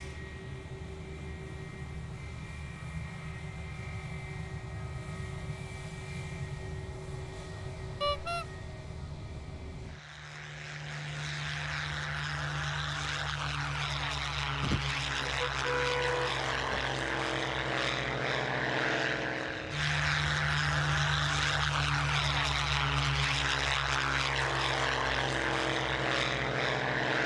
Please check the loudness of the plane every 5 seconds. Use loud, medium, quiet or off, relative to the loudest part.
quiet, quiet, medium, loud, loud, loud.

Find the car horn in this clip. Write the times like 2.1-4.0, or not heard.
8.0-8.4, 14.6-16.8.